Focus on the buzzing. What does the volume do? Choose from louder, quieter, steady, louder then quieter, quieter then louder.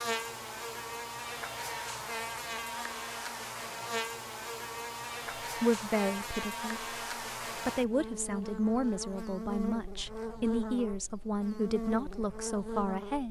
steady.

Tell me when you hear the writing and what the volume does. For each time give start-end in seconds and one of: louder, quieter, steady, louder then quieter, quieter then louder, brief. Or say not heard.
not heard.